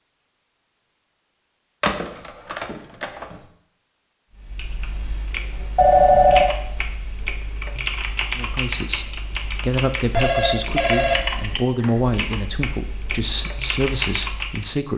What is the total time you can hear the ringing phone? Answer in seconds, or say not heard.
4 s.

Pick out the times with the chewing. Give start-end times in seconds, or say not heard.
not heard.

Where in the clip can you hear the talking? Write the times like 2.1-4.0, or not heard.
8.3-14.9.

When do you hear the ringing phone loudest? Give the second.
6 s.